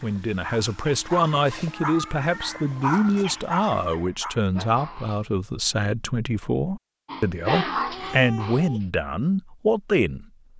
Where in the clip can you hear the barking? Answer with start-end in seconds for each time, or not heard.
0.0-5.2, 7.0-8.8.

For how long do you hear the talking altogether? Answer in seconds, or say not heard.
10 s.